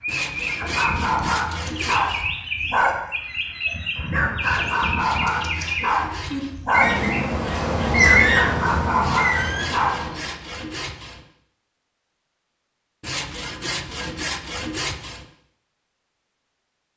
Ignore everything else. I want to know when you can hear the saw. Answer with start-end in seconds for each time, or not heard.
0.1-2.3, 4.4-6.5, 9.0-11.2, 13.0-15.2.